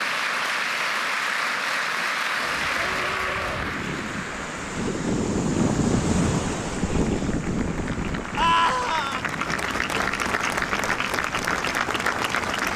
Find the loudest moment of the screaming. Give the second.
9 s.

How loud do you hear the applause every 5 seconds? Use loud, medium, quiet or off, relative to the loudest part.
loud, medium, loud.